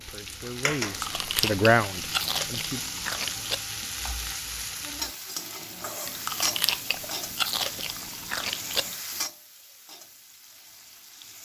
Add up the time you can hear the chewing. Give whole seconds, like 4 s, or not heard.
6 s.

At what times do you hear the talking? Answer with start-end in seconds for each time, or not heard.
0.0-2.8.